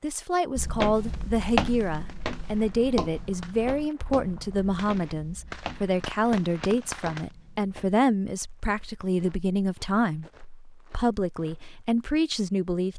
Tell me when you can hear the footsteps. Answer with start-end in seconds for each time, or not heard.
0.6-11.8.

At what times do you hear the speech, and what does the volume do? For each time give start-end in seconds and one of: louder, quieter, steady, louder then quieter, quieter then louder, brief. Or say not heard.
0.0-10.2 steady
10.9-12.9 brief.